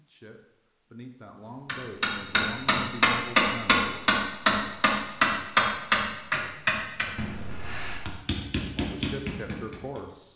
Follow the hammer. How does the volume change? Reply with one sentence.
The loudness of the hammer goes down.